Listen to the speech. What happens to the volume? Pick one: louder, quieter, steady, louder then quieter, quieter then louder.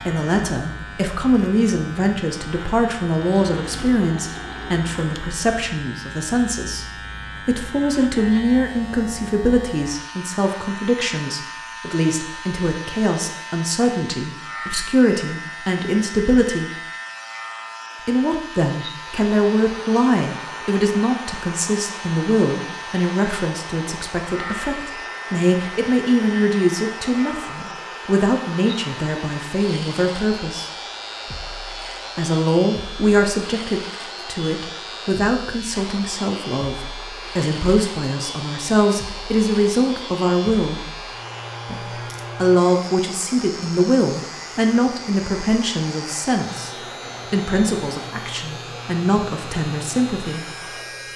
steady.